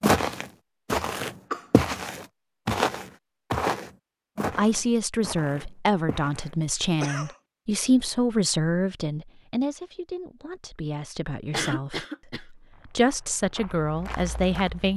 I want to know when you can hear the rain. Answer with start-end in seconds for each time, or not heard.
not heard.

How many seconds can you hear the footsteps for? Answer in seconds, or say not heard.
9 s.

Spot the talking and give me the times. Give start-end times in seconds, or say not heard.
4.5-14.9.